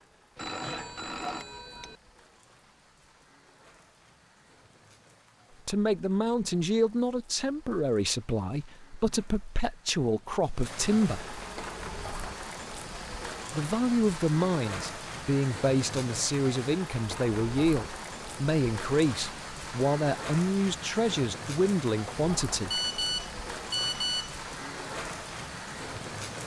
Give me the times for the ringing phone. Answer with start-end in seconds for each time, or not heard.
0.3-1.9, 22.7-24.4.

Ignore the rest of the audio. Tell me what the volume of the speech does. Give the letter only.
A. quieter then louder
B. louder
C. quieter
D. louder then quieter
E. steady
E.